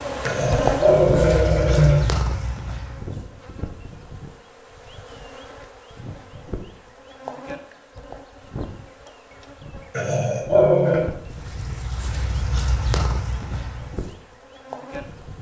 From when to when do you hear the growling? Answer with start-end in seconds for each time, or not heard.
0.2-2.0, 9.9-11.1.